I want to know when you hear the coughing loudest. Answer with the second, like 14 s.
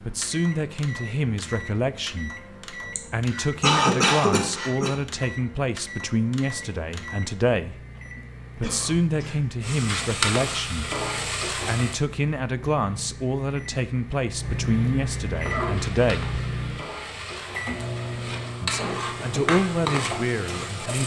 4 s.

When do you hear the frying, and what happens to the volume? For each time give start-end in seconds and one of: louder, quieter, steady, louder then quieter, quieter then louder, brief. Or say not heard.
9.6-11.9 brief
15.4-21.0 louder.